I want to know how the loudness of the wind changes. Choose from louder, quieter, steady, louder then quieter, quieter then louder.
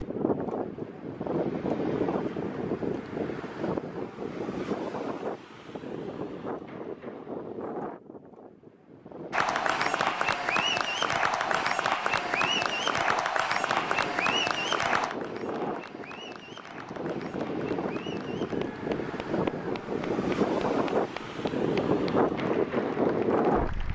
quieter then louder.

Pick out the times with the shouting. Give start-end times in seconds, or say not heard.
not heard.